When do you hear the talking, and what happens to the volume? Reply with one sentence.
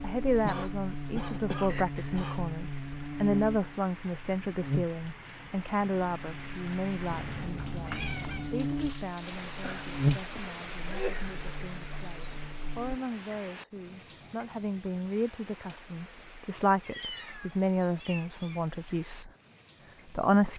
You can hear the talking from 0.0 to 19.3 s, getting quieter then louder; and briefly from 20.1 to 20.5 s.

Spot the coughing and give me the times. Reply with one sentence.
The coughing can be heard from 0.4 to 2.5 s, from 9.6 to 11.4 s and from 16.5 to 17.4 s.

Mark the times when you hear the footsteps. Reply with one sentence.
You can't hear the footsteps here.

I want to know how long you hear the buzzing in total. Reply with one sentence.
The buzzing can be heard for 13 seconds in total.